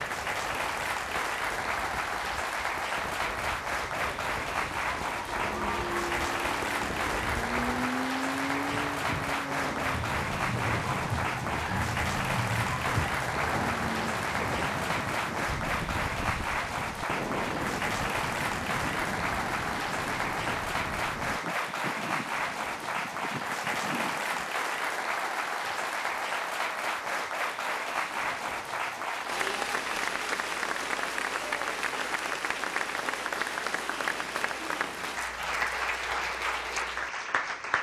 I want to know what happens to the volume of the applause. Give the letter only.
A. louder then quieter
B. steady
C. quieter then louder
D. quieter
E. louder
B.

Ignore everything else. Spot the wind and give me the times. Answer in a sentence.
The wind can be heard from 0.0 to 24.5 s.